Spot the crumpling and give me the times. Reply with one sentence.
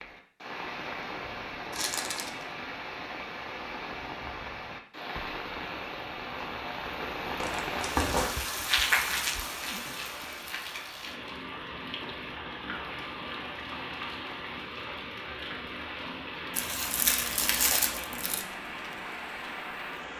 You can hear the crumpling from 1.7 to 2.5 s, from 7.4 to 8.3 s and from 16.6 to 18.4 s.